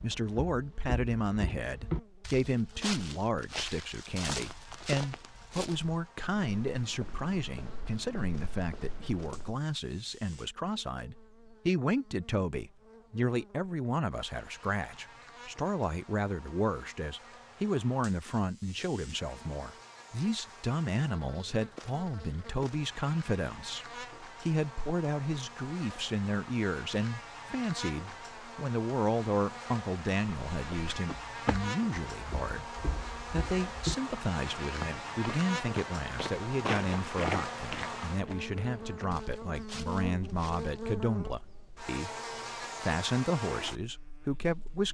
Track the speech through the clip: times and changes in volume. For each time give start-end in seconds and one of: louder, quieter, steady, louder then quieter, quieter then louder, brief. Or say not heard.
0.0-44.8 steady.